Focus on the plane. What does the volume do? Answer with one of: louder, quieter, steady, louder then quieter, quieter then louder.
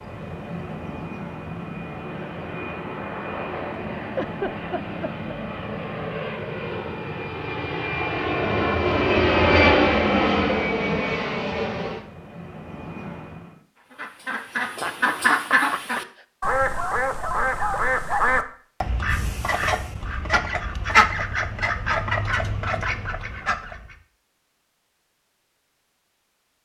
louder then quieter.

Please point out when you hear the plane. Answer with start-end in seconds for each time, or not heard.
0.0-13.6.